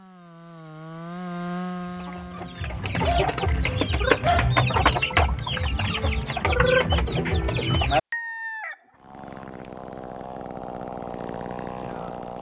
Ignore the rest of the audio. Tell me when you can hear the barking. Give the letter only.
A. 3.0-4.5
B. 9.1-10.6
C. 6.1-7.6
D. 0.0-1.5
A.